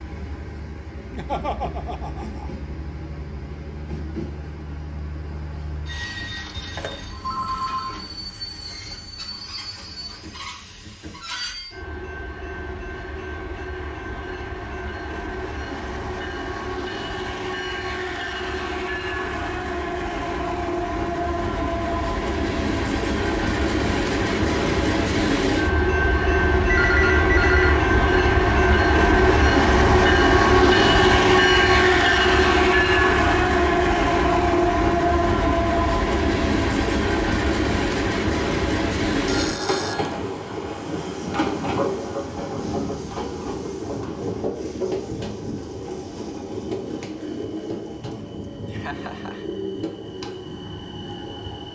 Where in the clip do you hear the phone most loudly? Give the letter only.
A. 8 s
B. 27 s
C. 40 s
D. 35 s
B.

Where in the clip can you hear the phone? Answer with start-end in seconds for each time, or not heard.
6.8-8.0, 26.6-27.8, 39.2-40.1.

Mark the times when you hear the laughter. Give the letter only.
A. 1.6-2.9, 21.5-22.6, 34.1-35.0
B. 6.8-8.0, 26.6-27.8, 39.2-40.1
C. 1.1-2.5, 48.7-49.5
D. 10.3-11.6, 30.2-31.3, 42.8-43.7
C.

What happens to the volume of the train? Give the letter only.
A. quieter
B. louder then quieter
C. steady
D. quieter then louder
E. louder
B.